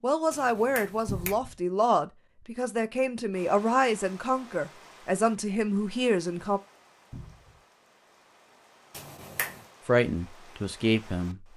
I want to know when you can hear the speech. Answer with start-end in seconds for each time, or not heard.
0.0-6.6, 9.8-11.4.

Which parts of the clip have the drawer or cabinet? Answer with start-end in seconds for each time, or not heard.
1.1-1.6, 7.1-7.6.